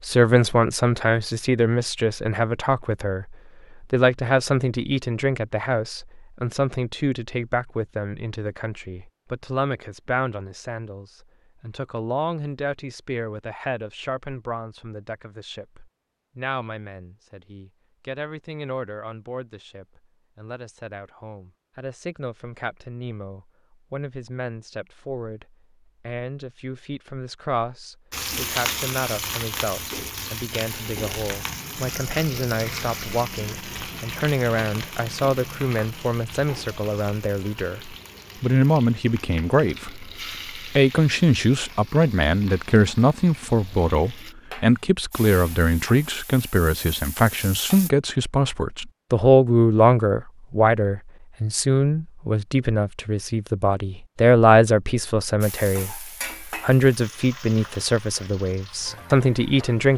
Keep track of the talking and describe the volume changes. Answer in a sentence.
The loudness of the talking goes down, then up.